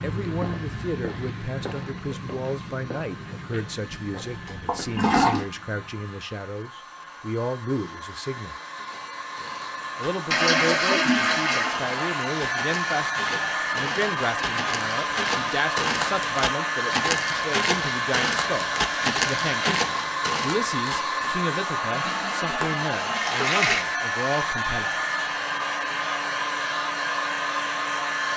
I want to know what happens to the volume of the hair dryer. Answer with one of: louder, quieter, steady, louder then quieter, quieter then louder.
louder.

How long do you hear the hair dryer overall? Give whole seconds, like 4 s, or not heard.
28 s.